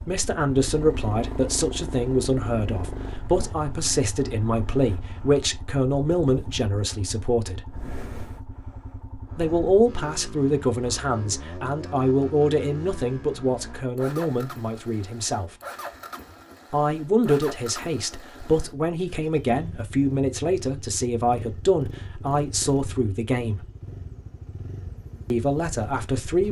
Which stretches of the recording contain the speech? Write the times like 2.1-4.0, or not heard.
0.1-7.6, 9.3-15.5, 16.7-23.6, 25.3-26.4.